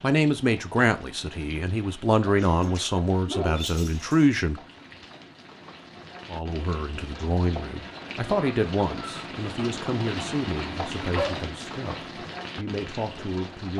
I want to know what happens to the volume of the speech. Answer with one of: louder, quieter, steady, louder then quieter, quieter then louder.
quieter.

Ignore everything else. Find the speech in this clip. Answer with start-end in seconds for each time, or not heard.
0.0-4.6, 6.3-13.7.